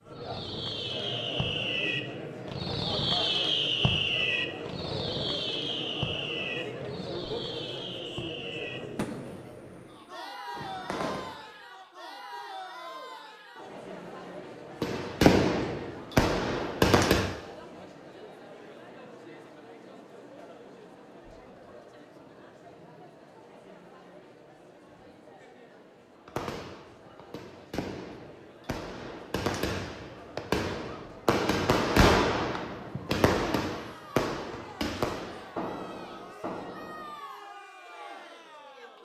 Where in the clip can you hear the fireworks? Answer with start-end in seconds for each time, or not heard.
0.1-11.4, 14.8-17.4, 26.2-37.2.